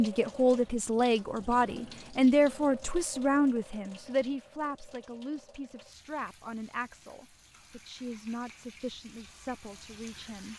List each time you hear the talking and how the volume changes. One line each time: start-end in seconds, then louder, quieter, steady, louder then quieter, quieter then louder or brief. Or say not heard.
0.0-10.5 quieter.